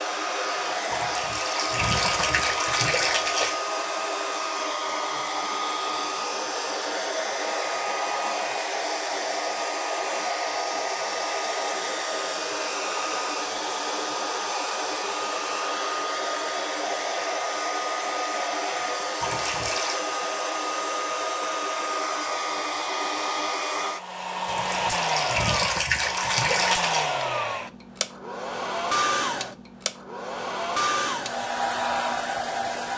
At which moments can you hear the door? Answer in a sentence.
The door can't be heard in this clip.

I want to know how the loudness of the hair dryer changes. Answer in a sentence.
The volume of the hair dryer stays about the same.